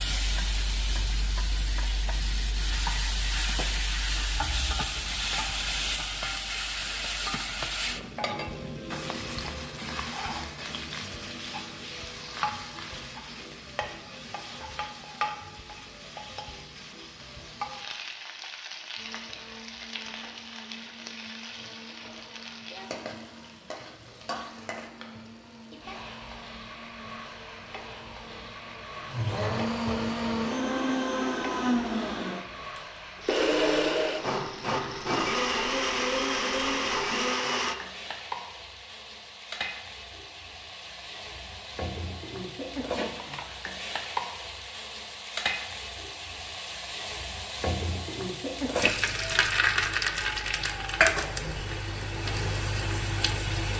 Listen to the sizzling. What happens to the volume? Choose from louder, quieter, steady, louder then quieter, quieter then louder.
quieter then louder.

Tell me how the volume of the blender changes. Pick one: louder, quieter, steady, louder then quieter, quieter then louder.
louder.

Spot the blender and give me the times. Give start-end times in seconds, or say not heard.
18.9-37.8.